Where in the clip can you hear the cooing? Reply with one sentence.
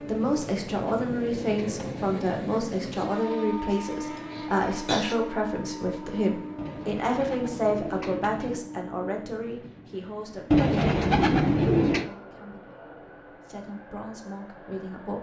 You can hear the cooing from 0.1 to 2.1 s, from 6.5 to 8.6 s and from 10.5 to 12.1 s.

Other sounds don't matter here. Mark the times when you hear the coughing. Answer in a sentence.
You can hear the coughing from 4.2 to 5.2 s.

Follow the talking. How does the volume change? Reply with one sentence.
The loudness of the talking goes down.